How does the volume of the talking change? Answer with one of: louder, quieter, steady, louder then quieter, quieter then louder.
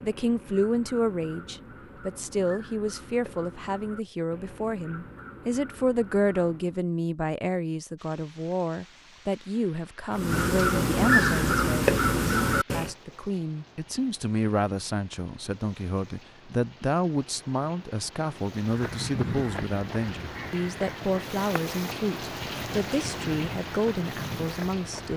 steady.